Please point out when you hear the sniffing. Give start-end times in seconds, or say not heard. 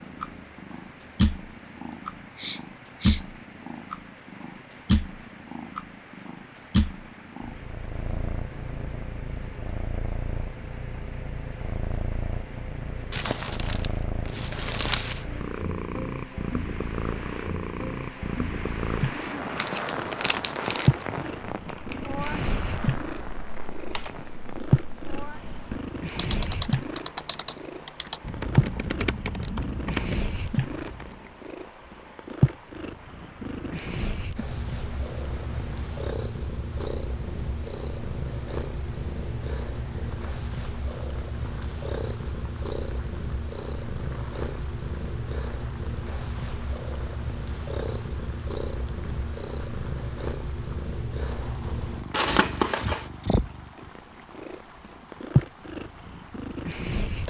2.4-3.2.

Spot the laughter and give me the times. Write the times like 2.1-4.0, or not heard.
not heard.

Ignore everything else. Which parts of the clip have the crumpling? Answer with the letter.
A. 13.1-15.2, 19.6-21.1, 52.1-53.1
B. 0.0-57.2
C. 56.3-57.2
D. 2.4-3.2
A.